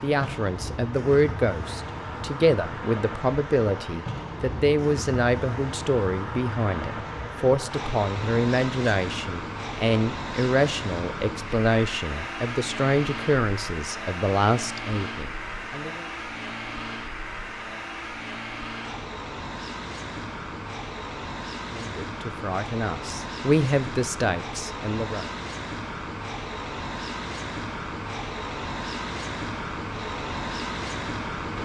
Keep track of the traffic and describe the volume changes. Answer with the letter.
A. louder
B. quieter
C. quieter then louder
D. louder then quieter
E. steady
E.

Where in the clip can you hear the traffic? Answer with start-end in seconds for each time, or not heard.
0.0-31.6.